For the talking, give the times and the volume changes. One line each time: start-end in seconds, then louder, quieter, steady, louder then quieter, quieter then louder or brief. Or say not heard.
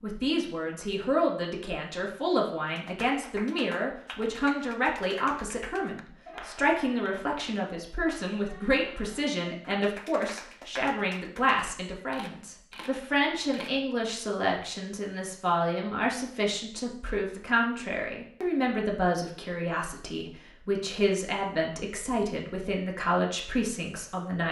0.0-24.4 steady.